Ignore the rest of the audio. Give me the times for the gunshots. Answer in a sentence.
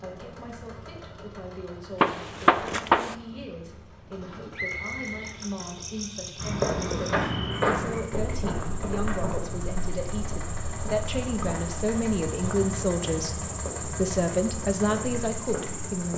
You can hear the gunshots from 2.0 to 3.1 s.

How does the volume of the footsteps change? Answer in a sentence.
The volume of the footsteps goes down.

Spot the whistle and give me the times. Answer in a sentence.
You can hear the whistle from 4.5 to 5.4 s.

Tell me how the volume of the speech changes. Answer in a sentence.
The volume of the speech goes up.